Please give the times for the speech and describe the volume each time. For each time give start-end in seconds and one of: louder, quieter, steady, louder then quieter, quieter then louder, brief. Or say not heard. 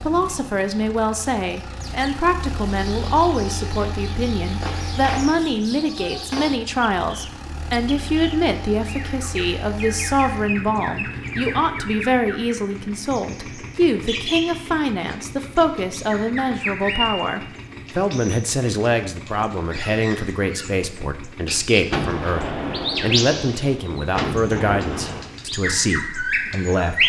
0.0-27.0 steady.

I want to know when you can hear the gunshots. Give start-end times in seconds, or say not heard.
4.6-6.5, 21.9-25.3.